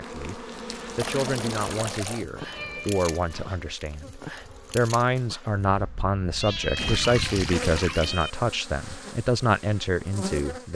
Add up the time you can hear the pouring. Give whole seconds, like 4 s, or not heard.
3 s.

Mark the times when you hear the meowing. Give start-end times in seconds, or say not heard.
2.4-3.6, 6.4-8.3.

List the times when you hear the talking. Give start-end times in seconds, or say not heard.
0.0-10.7.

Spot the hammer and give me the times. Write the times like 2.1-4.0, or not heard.
not heard.